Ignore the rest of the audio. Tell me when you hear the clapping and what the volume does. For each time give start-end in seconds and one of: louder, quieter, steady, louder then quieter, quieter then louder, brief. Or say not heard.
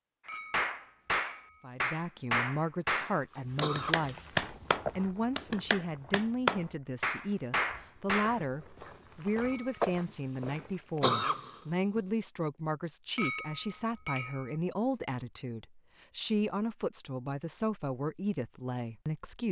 0.5-8.3 steady.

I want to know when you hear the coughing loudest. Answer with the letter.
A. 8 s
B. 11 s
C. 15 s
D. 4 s
B.